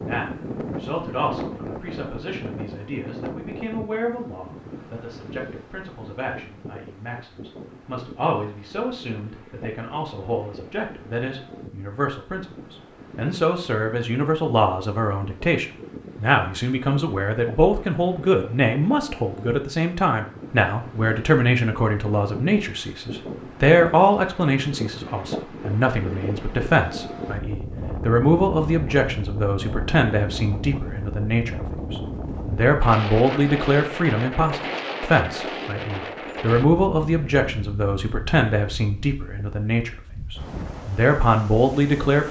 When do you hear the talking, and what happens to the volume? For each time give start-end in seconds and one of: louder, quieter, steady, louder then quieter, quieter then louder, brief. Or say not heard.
0.0-42.2 louder.